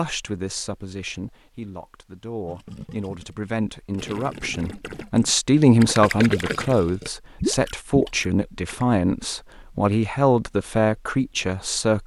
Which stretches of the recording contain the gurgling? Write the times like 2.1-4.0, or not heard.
2.5-8.8.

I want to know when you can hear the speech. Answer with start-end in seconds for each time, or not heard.
0.0-12.0.